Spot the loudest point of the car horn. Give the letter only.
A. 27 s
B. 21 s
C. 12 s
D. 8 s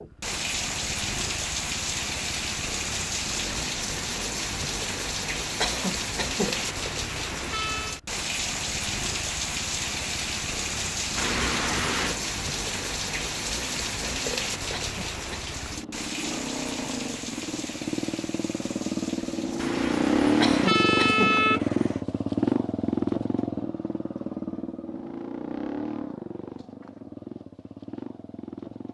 B.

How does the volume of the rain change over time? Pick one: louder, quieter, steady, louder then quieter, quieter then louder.
quieter.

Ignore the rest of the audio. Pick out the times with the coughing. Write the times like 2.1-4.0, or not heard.
5.6-6.6, 14.8-15.4, 20.4-21.4.